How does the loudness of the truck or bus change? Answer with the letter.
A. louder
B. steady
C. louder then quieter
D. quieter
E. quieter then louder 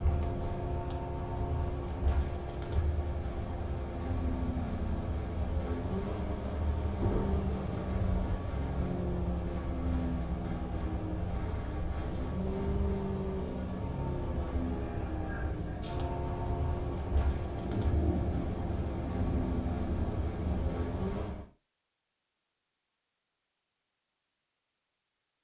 B.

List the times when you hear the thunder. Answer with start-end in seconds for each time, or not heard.
7.0-8.4, 16.8-20.9.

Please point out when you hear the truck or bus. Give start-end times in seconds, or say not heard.
0.0-21.4.